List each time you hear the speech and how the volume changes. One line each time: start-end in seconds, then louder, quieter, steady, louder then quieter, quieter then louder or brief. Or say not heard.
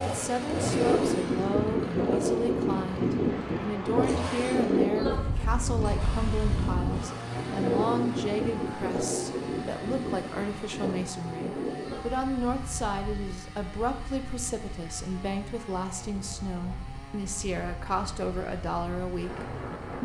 0.0-20.0 steady.